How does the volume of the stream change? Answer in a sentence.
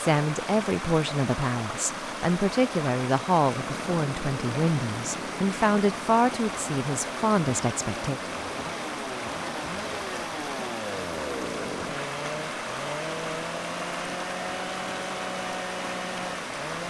The volume of the stream stays about the same.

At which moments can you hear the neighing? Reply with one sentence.
You can't hear the neighing here.